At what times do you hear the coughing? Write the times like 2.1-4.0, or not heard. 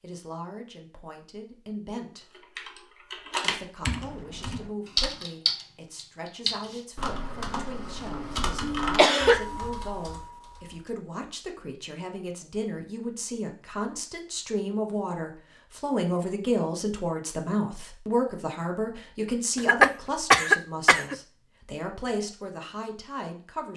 8.1-9.6, 19.6-21.1.